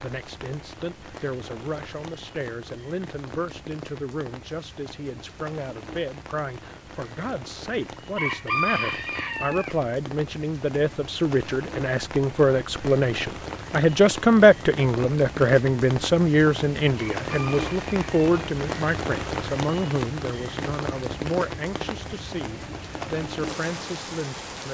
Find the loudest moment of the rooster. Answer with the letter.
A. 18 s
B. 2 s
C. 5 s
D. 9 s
D.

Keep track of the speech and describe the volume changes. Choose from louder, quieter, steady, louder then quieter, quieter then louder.
louder then quieter.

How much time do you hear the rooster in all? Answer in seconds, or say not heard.
3 s.